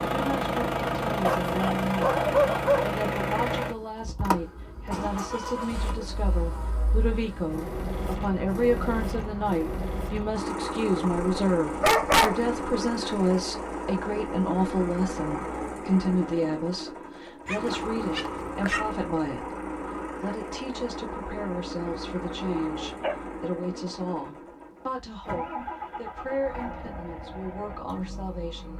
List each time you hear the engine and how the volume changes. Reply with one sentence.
The engine can be heard from 0.0 to 28.7 s, getting quieter.